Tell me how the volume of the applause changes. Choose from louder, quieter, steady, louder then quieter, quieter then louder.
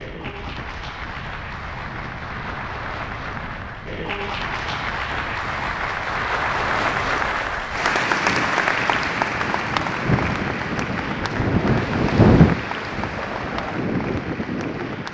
louder then quieter.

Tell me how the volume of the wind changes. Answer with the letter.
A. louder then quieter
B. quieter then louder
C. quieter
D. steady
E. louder
E.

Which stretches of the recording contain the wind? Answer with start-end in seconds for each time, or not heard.
0.0-15.1.